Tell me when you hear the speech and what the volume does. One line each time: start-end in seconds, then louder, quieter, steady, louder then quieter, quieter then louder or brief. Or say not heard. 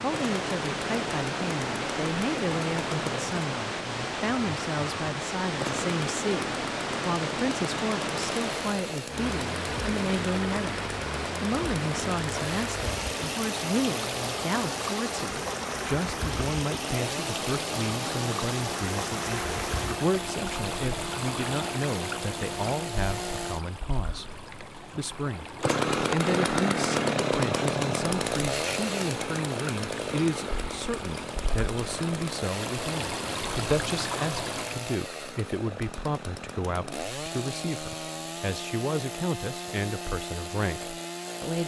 0.0-41.6 steady.